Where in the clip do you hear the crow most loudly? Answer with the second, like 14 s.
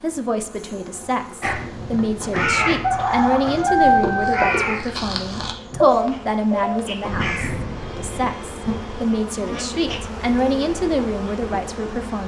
4 s.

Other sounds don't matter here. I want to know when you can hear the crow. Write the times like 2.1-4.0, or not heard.
1.4-9.1.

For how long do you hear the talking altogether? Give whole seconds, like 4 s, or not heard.
12 s.